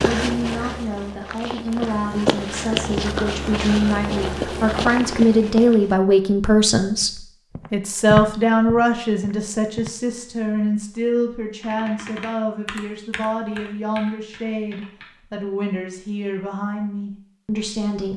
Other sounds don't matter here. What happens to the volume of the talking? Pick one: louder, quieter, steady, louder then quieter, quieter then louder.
louder then quieter.